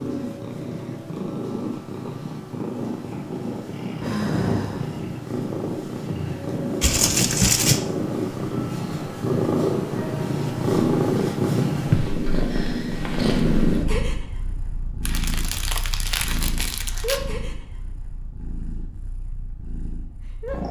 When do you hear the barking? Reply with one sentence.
The barking can't be heard in this clip.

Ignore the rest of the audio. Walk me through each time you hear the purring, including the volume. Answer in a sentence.
The purring can be heard from 0.0 to 20.6 s, getting louder then quieter.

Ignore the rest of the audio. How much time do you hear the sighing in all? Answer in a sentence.
The sighing can be heard for 2 seconds in total.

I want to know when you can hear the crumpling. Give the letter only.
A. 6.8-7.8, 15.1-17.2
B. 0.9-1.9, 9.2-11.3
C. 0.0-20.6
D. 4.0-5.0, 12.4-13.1
A.